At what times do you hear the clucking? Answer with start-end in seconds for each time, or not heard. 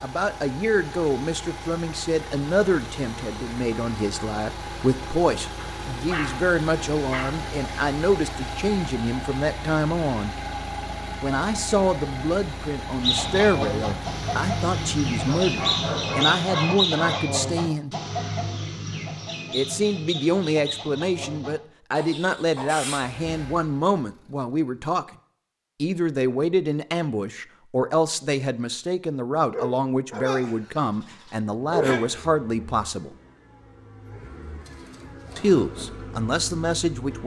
13.0-23.1.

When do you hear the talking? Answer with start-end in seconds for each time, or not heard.
0.0-10.3, 11.2-17.9, 19.5-25.1, 25.8-33.1, 35.4-37.2.